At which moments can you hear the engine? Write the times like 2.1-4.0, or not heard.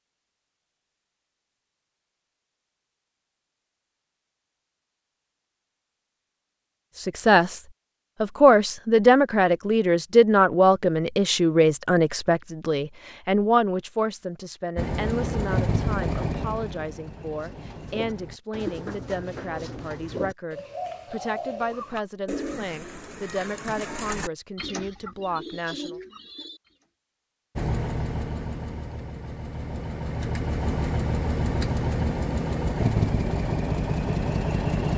14.8-18.4, 27.6-34.9.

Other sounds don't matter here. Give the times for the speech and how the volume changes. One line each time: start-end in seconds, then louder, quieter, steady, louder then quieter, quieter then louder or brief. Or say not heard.
7.0-7.6 brief
8.2-26.0 quieter.